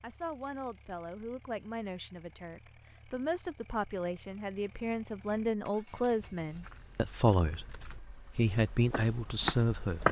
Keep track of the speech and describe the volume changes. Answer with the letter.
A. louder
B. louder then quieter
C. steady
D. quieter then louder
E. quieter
A.